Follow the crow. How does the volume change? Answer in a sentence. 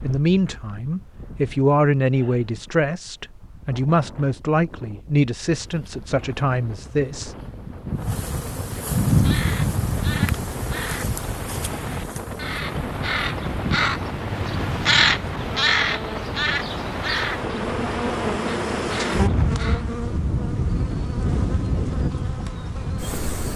The volume of the crow goes up, then down.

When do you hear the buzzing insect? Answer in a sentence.
The buzzing insect can be heard from 5.5 to 23.5 s.